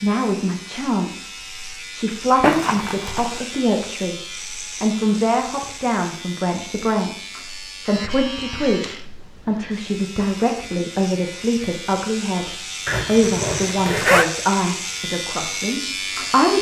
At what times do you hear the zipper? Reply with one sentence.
The zipper can be heard from 2.4 to 3.4 s and from 12.8 to 14.2 s.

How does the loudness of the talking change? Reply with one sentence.
The loudness of the talking stays about the same.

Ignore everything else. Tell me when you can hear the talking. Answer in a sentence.
You can hear the talking from 0.0 to 16.5 s.